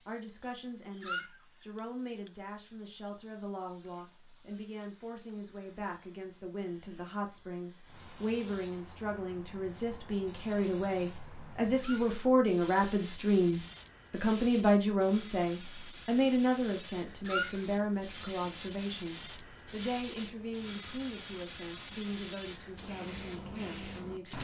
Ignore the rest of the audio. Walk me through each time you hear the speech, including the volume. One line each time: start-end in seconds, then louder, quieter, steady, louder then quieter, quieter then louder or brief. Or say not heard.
0.1-24.3 louder then quieter.